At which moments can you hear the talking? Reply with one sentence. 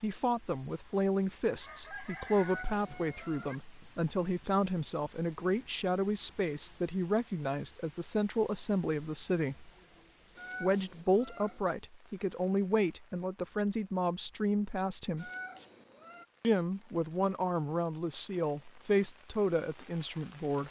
You can hear the talking from 0.0 to 9.7 s, from 10.6 to 15.3 s and from 16.4 to 20.6 s.